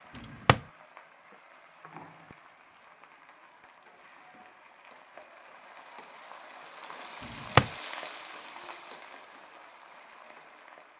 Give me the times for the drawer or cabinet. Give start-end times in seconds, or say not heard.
0.1-0.6, 7.2-7.7.